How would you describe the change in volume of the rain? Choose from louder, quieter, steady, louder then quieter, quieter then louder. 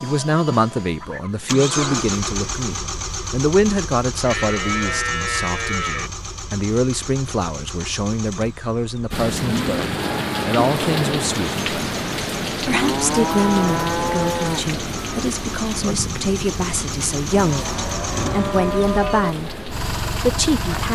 quieter.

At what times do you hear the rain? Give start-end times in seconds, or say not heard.
9.1-20.9.